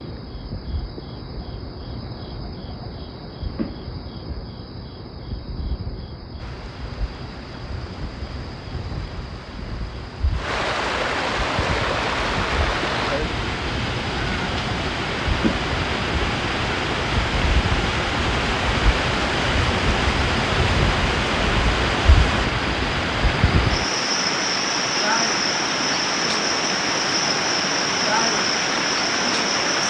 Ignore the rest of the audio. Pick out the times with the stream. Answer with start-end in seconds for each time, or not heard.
6.3-29.8.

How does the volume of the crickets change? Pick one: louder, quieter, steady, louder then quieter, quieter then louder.
louder.